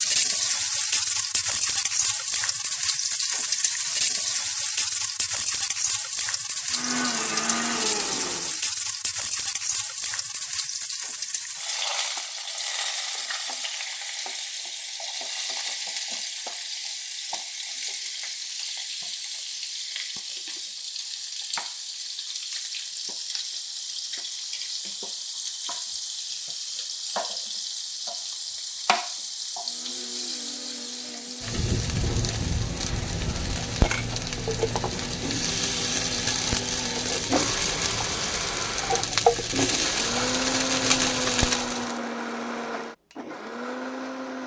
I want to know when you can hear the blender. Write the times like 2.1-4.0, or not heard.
6.7-8.6, 29.6-44.4.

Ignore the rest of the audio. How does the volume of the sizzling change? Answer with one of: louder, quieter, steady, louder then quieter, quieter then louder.
quieter then louder.